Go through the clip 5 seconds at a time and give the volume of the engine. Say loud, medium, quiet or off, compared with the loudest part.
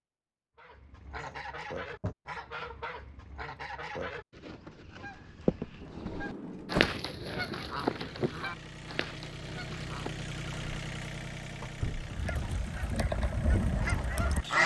off, loud, loud.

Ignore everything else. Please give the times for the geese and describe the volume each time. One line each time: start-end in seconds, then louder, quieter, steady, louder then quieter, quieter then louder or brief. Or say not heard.
0.6-10.3 louder then quieter
12.0-14.6 brief.